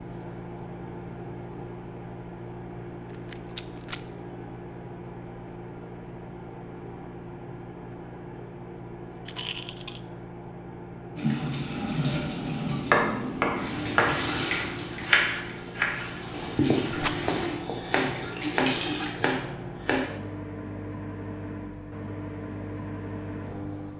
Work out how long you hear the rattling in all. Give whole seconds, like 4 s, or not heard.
2 s.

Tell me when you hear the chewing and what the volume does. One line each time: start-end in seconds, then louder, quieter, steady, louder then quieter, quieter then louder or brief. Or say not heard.
not heard.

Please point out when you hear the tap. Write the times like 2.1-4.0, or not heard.
11.2-19.1.